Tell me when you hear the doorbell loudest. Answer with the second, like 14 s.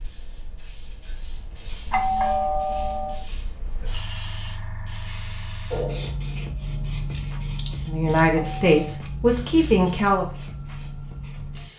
2 s.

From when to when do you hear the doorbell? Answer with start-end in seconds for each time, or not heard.
1.9-3.1, 8.3-8.9.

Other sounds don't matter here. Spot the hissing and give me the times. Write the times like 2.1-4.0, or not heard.
0.0-11.7.